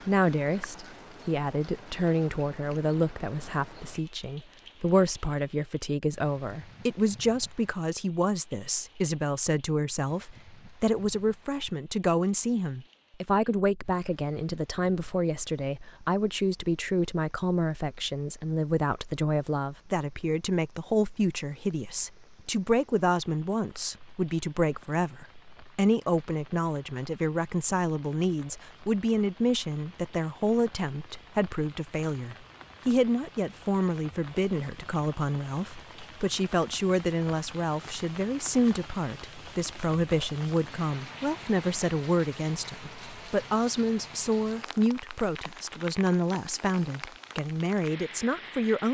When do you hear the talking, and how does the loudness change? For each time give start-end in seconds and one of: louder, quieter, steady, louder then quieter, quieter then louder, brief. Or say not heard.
0.1-48.9 steady.